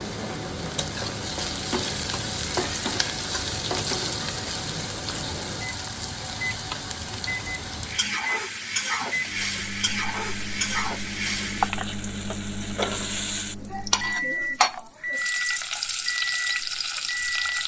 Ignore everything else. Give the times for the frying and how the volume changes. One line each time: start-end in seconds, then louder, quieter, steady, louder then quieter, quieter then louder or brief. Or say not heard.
0.0-17.6 steady.